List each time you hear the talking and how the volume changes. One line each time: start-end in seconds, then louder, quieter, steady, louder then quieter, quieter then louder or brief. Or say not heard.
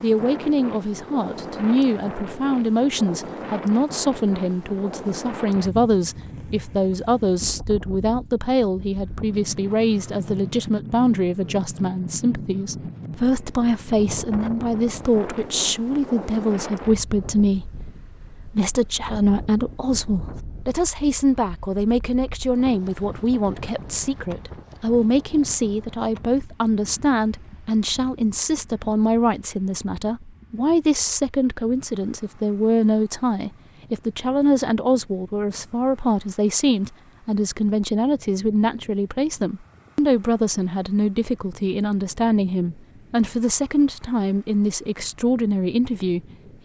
0.0-46.6 steady.